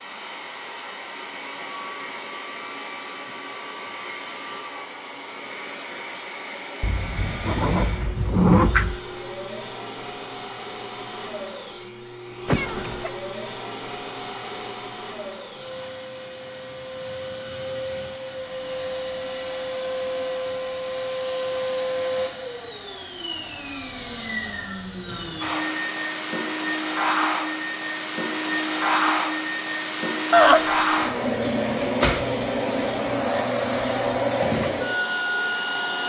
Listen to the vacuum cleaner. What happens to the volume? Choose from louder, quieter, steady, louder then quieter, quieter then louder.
louder.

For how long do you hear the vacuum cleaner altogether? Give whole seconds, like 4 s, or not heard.
36 s.